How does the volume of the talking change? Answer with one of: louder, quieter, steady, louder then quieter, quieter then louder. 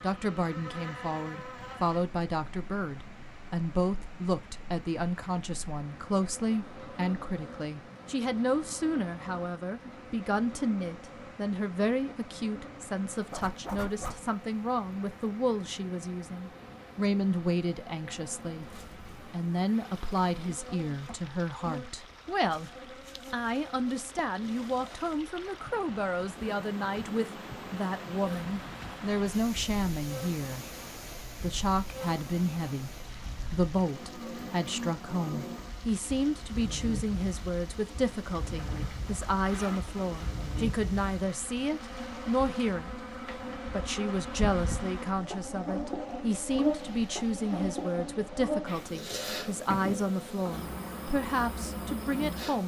steady.